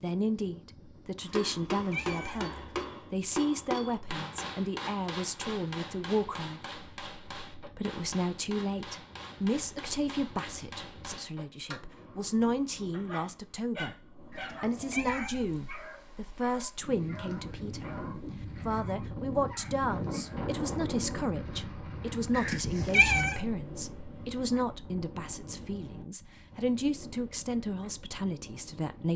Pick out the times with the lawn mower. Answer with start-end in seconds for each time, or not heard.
not heard.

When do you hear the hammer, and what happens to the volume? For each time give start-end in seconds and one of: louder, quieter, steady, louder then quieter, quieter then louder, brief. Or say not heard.
1.2-11.8 quieter.